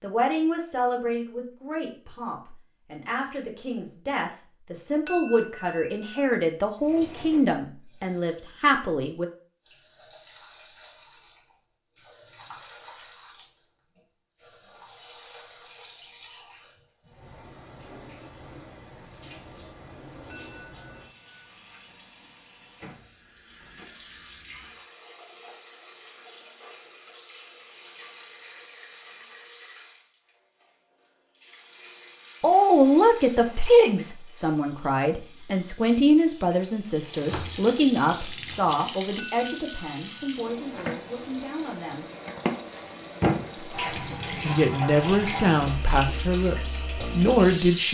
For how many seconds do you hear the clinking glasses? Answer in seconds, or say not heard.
2 s.